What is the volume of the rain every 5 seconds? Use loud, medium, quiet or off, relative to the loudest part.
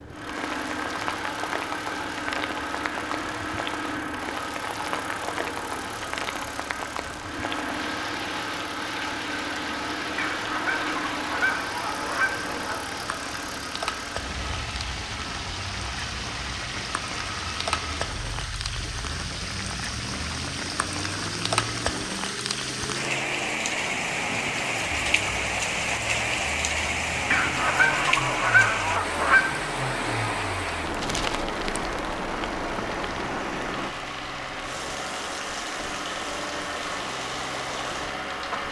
medium, medium, medium, medium, loud, loud, loud, medium.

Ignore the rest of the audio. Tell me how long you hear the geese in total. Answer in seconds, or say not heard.
5 s.